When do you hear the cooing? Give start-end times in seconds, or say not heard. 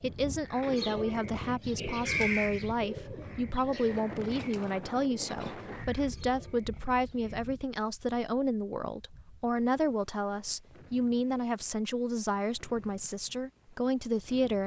0.5-7.5.